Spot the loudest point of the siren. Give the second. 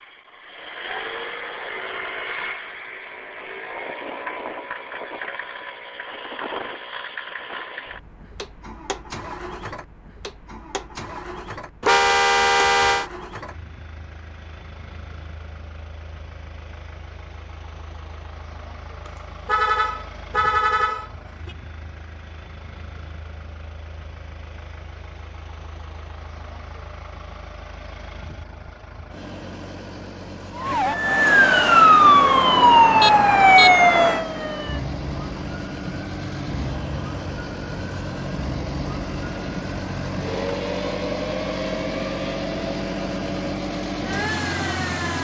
32 s.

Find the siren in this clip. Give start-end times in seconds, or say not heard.
30.6-45.1.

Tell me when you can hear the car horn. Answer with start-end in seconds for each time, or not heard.
11.8-13.1, 19.1-21.6, 33.0-33.8.